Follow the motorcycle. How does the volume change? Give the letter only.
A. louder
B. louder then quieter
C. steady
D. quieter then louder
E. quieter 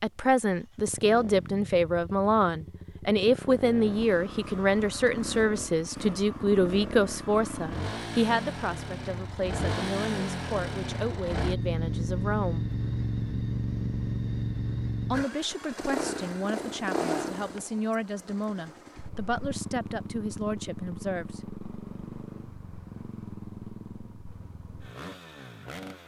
B.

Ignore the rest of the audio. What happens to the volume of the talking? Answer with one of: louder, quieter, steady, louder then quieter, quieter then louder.
quieter.